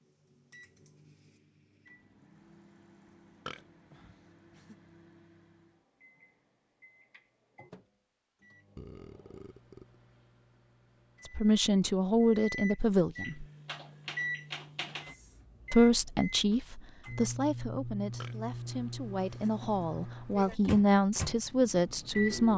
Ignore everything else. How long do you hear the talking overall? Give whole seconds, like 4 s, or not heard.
9 s.